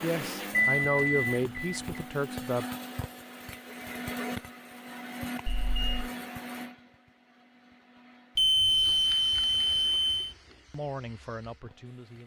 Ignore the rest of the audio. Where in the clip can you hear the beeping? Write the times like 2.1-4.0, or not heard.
0.5-2.0, 5.5-6.1, 8.3-10.3.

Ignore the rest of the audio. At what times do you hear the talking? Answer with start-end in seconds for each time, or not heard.
0.0-2.6, 10.7-12.2.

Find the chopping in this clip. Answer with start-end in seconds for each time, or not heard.
not heard.